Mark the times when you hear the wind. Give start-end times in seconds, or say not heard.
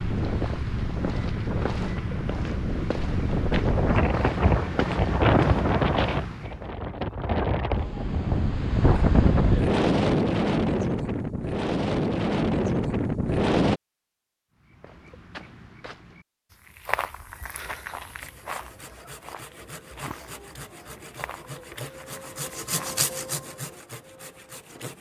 0.0-13.8.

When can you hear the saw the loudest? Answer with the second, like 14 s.
23 s.